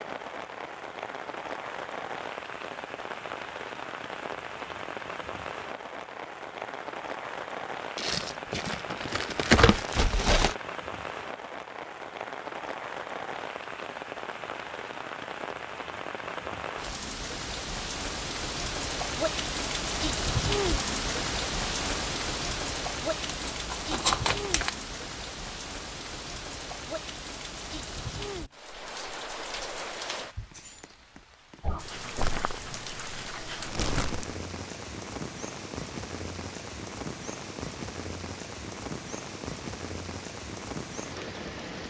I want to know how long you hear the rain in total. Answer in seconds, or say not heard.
42 s.